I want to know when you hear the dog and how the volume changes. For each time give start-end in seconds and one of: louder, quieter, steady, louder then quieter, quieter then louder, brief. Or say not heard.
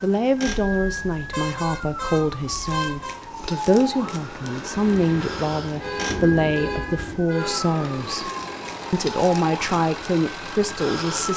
not heard.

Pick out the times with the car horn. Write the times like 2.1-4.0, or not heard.
0.5-3.2, 5.8-7.6.